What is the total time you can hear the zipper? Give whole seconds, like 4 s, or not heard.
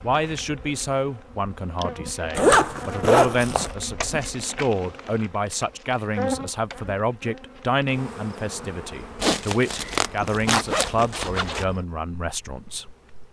4 s.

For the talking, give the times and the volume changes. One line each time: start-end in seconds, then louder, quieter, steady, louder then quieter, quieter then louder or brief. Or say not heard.
0.0-12.9 steady.